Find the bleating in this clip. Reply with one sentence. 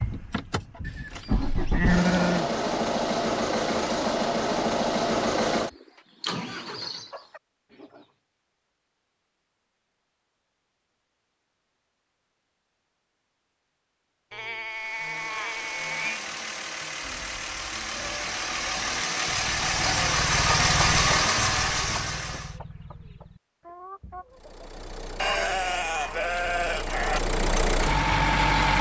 The bleating can be heard from 0.8 to 2.5 s, from 14.3 to 16.2 s and from 25.1 to 27.2 s.